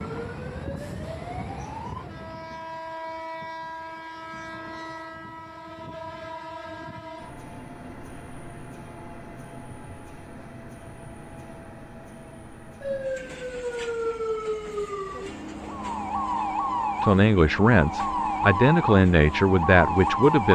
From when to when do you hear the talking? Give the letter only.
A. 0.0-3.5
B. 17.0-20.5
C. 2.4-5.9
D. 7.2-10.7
B.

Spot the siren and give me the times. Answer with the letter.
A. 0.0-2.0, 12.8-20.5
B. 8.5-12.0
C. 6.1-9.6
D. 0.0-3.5
A.